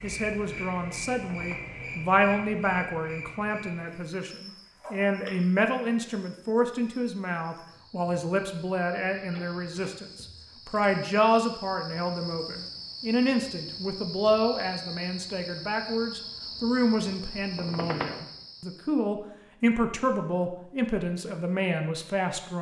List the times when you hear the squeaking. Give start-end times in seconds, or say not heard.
1.2-1.8, 9.1-10.0, 17.6-18.2.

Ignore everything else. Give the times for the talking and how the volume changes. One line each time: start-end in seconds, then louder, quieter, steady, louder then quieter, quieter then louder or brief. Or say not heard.
0.0-22.5 steady.